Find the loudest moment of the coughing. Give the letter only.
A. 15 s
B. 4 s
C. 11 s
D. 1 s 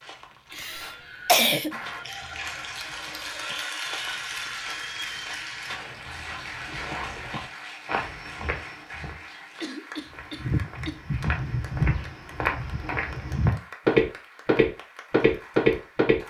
D.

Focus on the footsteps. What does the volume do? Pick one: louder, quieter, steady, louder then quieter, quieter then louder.
louder.